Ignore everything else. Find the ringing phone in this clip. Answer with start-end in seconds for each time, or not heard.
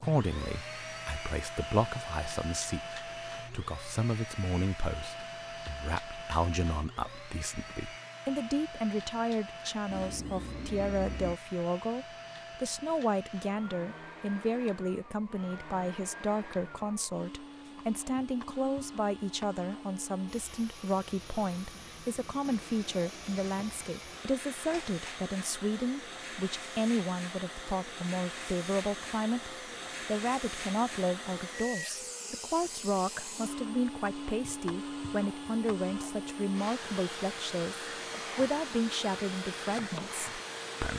9.8-11.3, 24.7-25.1.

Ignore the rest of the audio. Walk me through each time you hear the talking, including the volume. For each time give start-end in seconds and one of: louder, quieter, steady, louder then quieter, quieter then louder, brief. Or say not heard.
0.0-40.9 steady.